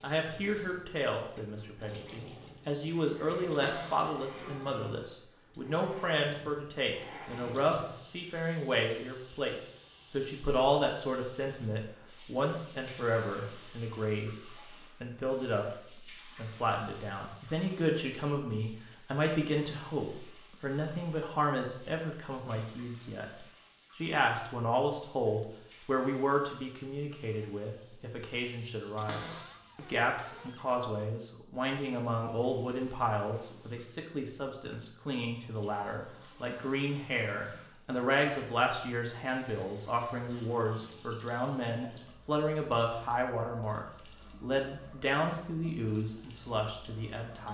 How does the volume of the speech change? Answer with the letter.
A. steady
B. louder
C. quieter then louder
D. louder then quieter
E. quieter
A.